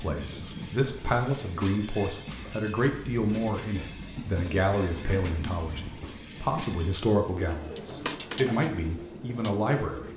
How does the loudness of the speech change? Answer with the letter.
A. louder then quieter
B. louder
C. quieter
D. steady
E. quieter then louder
D.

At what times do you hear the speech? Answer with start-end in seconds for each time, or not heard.
0.0-10.1.